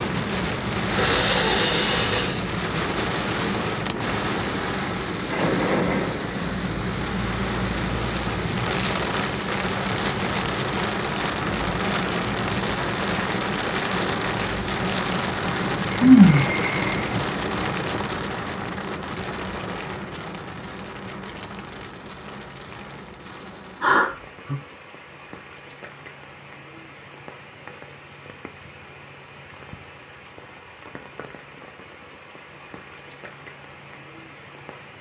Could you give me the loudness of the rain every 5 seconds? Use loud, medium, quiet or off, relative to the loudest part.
loud, loud, loud, loud, quiet, quiet, quiet.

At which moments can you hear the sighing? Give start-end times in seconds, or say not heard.
0.9-2.5, 15.9-16.9, 23.8-24.6.